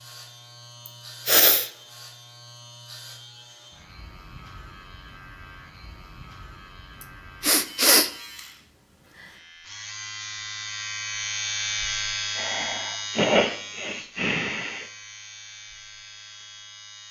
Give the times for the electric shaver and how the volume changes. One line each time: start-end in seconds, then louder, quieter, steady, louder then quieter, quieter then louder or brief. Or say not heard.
0.0-17.0 louder then quieter.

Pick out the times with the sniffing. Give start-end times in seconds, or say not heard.
0.8-1.7, 7.4-8.1, 12.3-14.8.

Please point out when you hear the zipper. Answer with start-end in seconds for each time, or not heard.
not heard.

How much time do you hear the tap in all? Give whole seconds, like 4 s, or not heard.
not heard.